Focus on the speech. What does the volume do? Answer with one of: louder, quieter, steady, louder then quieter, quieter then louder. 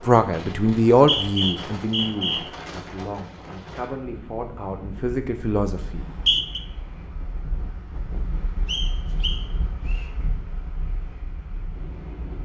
quieter then louder.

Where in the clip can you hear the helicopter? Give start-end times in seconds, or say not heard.
not heard.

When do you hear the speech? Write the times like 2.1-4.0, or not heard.
0.0-6.0.